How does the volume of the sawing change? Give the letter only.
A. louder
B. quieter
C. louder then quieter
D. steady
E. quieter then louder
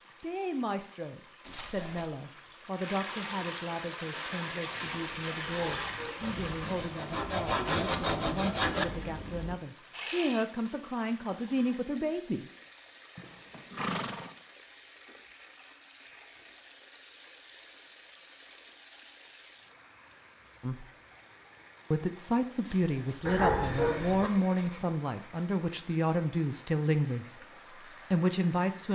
C.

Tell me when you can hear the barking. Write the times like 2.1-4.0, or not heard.
5.5-6.4, 23.2-24.3.